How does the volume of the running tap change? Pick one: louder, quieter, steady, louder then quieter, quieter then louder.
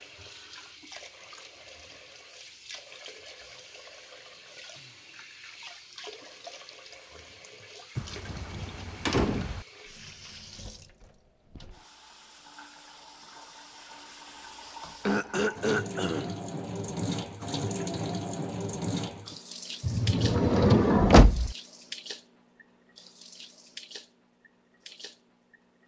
louder then quieter.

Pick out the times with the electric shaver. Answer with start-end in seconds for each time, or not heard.
not heard.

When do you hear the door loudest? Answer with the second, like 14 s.
21 s.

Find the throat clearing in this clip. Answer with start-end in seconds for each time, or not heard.
15.1-16.4.